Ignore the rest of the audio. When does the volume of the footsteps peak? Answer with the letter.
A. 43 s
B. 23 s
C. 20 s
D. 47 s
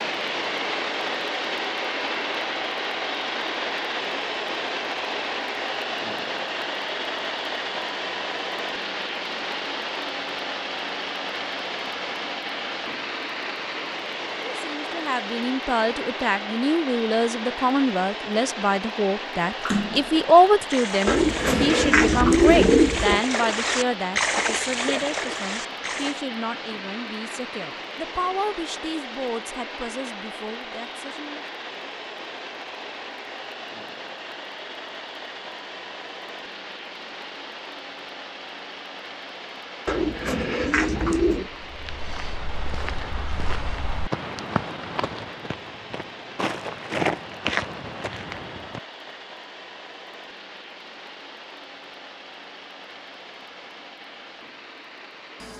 D.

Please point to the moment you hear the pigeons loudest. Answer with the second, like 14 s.
23 s.